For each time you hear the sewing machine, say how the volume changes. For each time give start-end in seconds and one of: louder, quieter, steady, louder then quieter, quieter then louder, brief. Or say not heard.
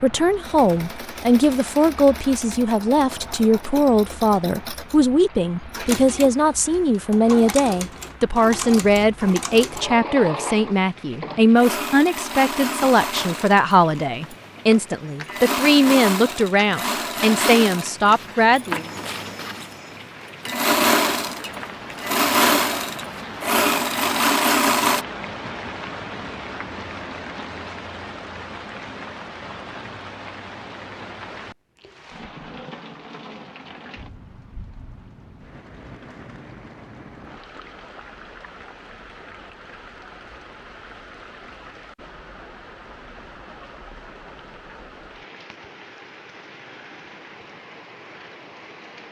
0.1-25.1 louder.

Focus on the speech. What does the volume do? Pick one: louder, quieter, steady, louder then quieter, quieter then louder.
steady.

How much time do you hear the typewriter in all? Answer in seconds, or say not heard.
not heard.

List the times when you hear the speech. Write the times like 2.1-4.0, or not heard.
0.0-18.9.